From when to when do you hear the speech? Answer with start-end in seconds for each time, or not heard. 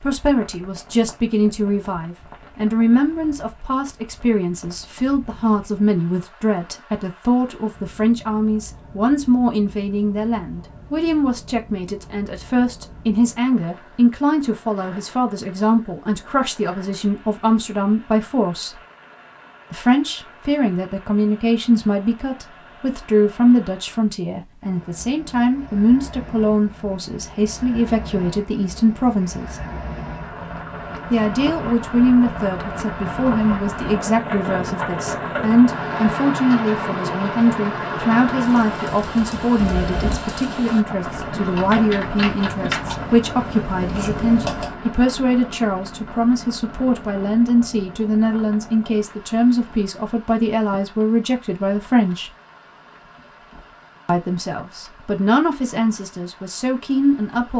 0.0-18.8, 19.7-29.6, 31.1-52.3, 54.0-57.5.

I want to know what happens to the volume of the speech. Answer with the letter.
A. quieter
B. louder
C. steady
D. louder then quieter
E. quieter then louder
C.